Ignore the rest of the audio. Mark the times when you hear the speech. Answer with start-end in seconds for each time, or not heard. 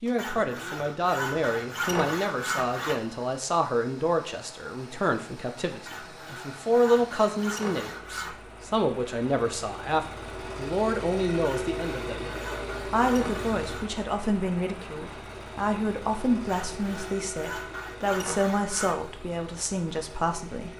0.0-12.3, 12.9-20.7.